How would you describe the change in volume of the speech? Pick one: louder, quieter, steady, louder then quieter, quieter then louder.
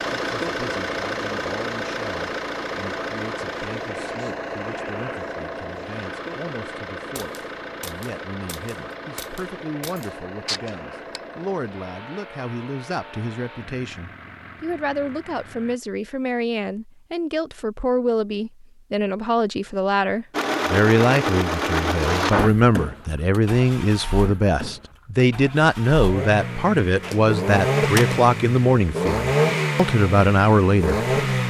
louder.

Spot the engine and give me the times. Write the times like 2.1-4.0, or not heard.
0.0-15.8, 20.3-31.4.